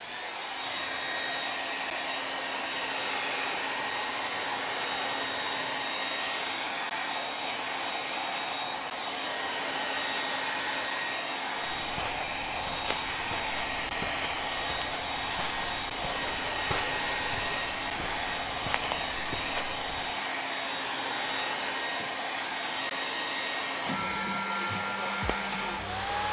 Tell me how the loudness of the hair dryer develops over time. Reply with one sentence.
The volume of the hair dryer stays about the same.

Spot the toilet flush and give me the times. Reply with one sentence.
The toilet flush can't be heard in this clip.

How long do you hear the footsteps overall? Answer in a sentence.
The footsteps can be heard for 9 seconds in total.